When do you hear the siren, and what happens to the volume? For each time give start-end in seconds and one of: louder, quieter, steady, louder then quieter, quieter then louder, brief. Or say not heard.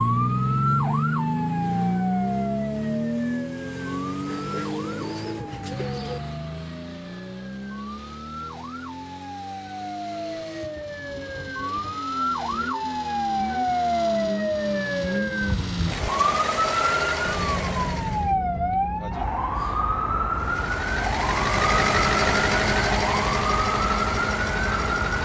0.0-25.2 quieter then louder.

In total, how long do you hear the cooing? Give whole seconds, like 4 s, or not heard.
2 s.